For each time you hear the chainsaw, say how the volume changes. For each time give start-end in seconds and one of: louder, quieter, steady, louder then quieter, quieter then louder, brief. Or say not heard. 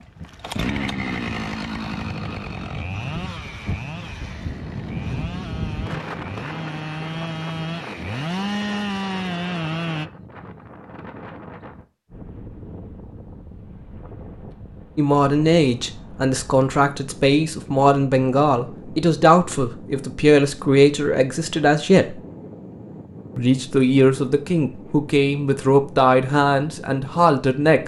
0.0-10.1 quieter then louder.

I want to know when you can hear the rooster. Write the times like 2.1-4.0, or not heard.
not heard.